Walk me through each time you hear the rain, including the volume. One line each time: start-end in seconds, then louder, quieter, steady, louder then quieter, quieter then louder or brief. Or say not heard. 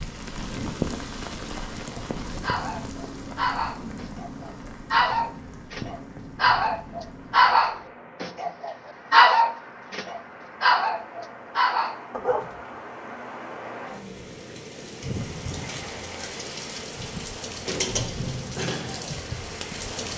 0.0-20.1 quieter then louder.